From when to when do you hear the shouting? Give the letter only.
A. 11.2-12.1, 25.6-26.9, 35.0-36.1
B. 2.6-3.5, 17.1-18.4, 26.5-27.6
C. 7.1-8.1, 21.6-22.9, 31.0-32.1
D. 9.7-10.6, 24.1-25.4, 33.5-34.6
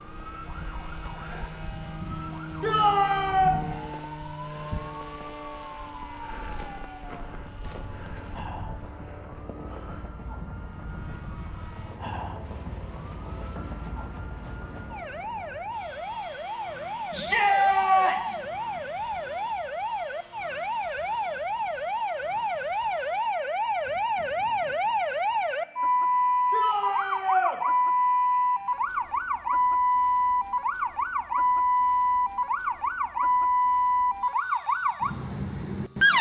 B.